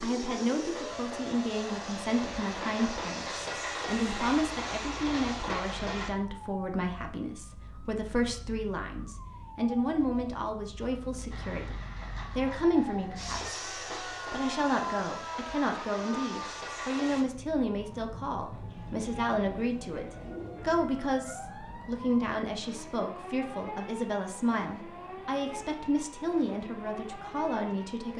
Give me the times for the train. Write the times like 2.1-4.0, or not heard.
0.0-6.1, 11.3-17.2.